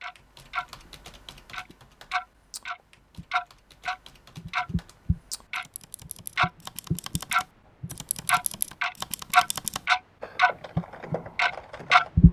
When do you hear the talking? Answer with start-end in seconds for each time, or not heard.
not heard.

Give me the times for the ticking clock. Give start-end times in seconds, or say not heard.
0.0-0.7, 1.5-12.2.